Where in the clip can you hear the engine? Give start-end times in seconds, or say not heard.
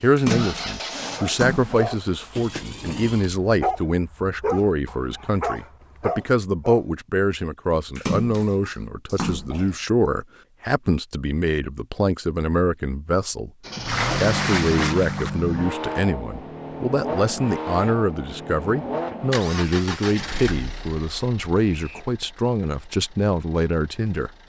0.2-2.5, 13.6-24.4.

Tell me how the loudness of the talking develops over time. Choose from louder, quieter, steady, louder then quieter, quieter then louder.
steady.